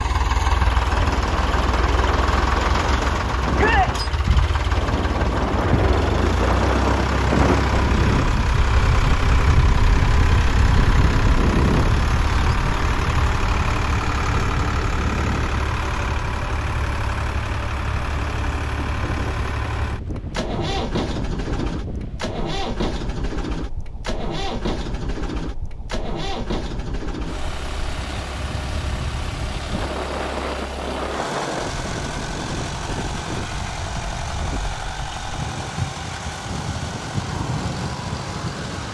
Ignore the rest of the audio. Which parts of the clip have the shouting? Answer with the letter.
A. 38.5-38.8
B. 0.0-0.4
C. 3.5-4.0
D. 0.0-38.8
C.